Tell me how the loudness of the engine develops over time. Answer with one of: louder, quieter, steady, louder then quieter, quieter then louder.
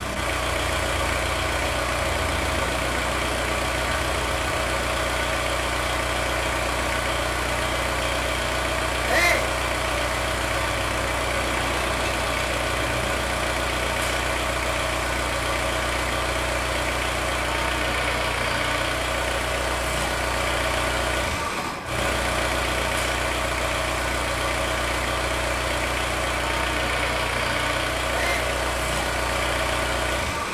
steady.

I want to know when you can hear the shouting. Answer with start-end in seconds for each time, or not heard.
9.1-9.5, 28.1-28.6.